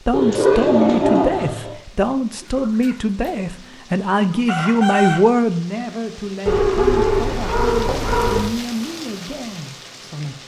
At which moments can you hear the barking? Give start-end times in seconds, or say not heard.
0.1-1.7, 6.5-8.5.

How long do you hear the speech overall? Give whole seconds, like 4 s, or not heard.
10 s.